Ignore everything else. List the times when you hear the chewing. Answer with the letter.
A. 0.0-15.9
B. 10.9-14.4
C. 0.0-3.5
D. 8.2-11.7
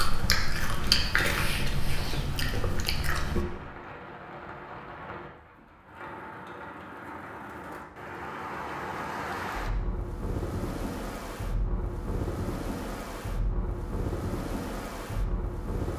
C.